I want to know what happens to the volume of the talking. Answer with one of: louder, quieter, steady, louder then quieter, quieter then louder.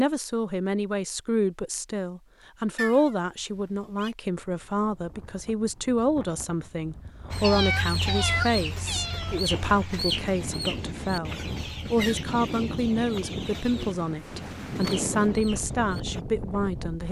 steady.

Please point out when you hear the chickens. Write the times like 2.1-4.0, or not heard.
7.3-16.2.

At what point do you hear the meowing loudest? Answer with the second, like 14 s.
8 s.